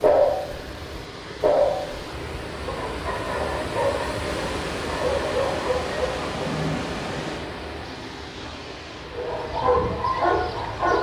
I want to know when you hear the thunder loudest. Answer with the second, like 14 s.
7 s.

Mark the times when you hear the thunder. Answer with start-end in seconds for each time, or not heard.
4.2-7.5.